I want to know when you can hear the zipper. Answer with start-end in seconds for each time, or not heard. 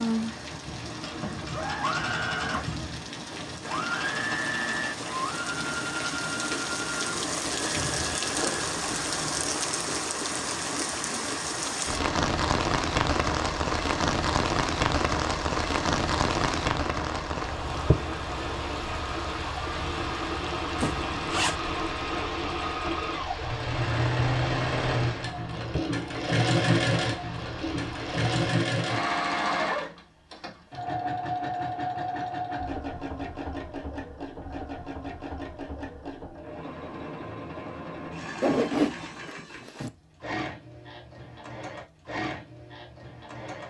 8.3-9.3, 20.8-21.6, 38.4-39.9.